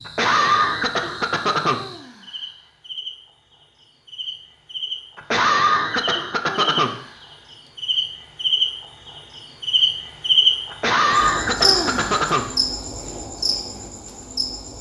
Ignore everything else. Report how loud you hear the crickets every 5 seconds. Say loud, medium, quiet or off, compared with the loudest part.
quiet, loud, loud.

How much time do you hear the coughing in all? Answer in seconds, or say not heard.
5 s.